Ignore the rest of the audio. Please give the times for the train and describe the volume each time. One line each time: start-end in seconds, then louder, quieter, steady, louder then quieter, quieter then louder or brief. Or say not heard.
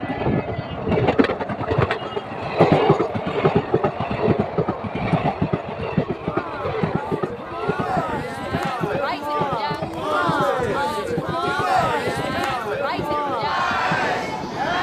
0.0-14.7 quieter.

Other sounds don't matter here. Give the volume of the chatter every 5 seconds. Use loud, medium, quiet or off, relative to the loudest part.
medium, medium, loud.